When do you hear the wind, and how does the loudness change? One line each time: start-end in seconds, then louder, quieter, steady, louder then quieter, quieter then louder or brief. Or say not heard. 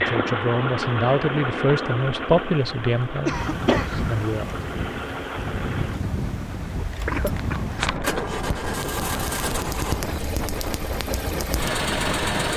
0.0-12.5 louder.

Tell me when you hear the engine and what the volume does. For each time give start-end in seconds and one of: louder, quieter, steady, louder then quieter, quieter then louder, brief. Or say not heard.
0.0-12.5 quieter then louder.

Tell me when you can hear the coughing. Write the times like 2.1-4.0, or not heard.
3.2-4.0, 7.0-8.2.